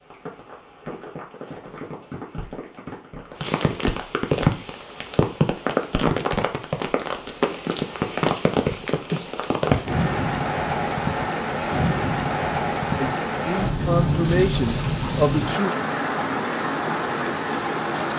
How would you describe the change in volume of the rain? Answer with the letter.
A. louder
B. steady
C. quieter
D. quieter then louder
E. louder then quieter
A.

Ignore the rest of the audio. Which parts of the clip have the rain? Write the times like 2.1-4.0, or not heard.
0.0-18.1.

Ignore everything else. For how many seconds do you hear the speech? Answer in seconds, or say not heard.
3 s.